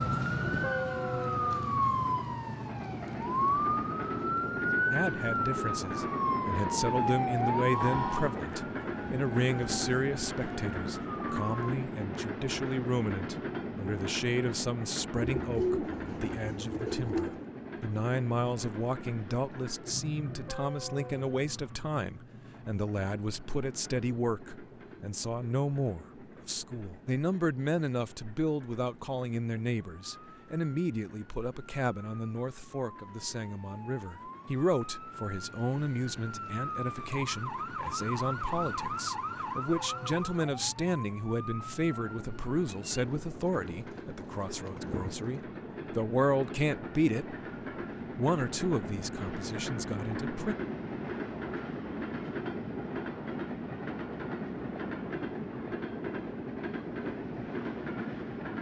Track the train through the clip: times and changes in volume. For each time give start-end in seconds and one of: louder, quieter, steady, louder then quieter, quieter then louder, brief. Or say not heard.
0.0-58.5 quieter then louder.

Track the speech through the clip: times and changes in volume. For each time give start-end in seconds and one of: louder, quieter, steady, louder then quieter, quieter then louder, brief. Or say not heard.
4.9-47.4 steady
48.1-50.5 brief.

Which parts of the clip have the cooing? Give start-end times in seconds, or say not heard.
15.2-17.5, 42.9-45.4.